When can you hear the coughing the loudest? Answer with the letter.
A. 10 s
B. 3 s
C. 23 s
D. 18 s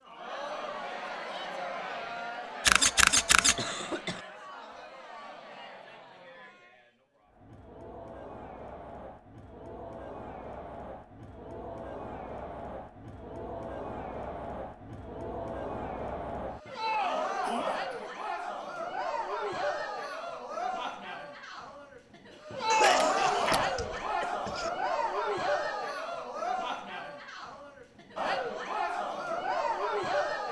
C.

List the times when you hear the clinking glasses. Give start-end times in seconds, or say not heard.
not heard.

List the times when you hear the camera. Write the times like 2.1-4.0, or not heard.
2.6-3.5, 22.8-23.6.